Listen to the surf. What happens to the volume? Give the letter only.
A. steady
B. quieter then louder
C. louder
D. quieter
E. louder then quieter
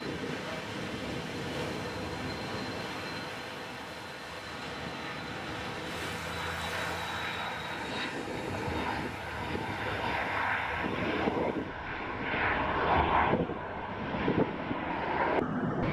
D.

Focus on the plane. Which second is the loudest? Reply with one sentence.
The loudest moment of the plane is at 13 seconds.